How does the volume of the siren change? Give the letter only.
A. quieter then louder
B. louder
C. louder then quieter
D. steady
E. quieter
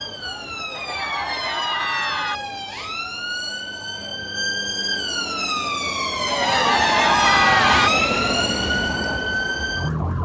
B.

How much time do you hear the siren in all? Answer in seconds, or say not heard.
10 s.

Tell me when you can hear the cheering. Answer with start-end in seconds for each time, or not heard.
0.8-2.4, 6.2-7.9.